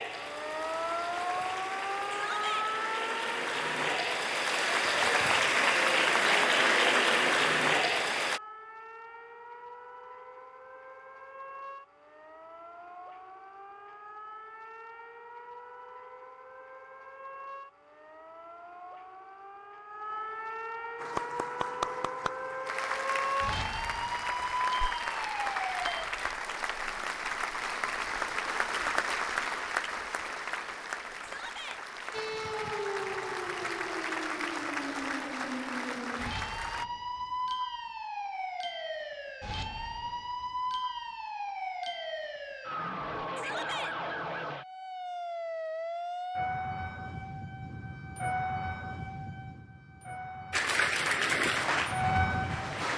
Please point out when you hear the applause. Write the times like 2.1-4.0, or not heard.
0.0-8.4, 20.9-36.9, 50.5-52.9.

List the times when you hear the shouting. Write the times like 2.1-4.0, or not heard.
2.1-2.7, 31.2-31.8, 43.4-44.0.